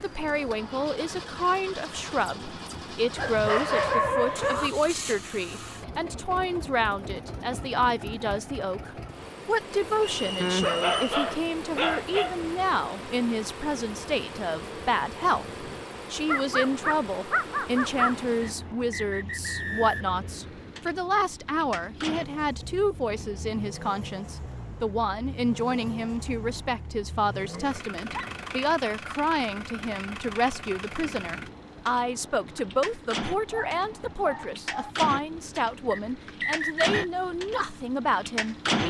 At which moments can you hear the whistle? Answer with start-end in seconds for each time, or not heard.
10.2-11.1, 18.4-20.1, 35.9-37.0.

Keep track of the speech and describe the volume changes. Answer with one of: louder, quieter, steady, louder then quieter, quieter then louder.
steady.